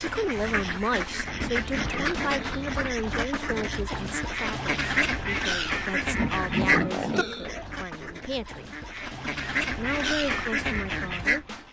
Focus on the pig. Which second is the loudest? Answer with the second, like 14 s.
7 s.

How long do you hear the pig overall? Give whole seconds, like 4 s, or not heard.
3 s.